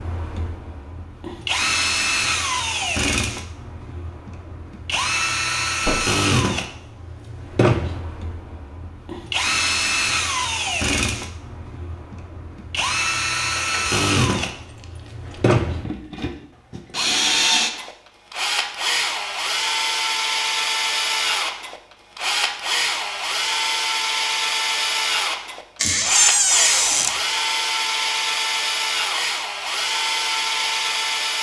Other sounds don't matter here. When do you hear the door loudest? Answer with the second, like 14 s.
26 s.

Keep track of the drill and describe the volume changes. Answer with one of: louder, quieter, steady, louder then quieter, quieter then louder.
steady.